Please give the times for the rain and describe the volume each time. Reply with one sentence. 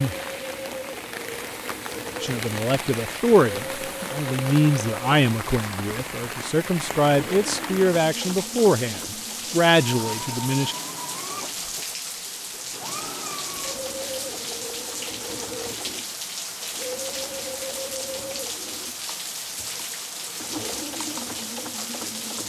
You can hear the rain from 0.0 to 22.4 s, at a steady volume.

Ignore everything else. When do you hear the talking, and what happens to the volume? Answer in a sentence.
The talking can be heard from 2.2 to 10.8 s, at a steady volume.